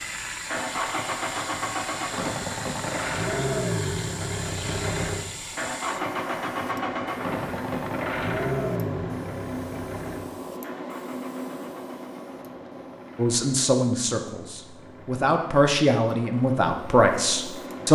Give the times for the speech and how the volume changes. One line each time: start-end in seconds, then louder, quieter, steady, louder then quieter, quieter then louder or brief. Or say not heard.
13.2-17.8 quieter then louder.